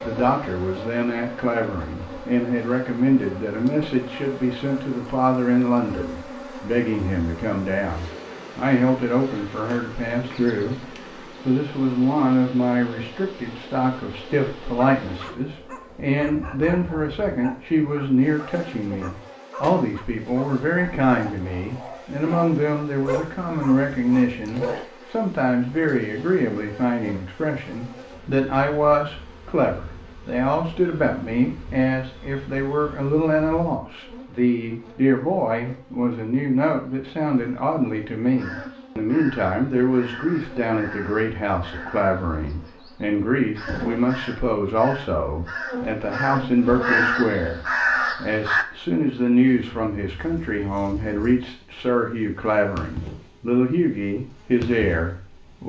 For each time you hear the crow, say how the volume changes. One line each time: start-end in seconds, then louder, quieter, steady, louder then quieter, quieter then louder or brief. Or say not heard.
38.4-48.6 louder.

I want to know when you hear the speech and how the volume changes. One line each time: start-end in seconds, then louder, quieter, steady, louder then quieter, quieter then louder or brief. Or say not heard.
0.0-10.8 steady
11.4-55.6 steady.